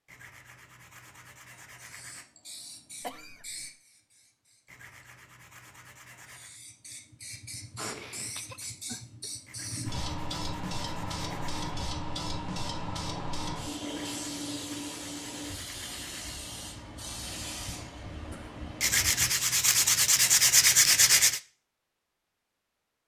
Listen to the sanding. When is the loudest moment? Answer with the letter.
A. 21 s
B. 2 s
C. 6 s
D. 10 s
A.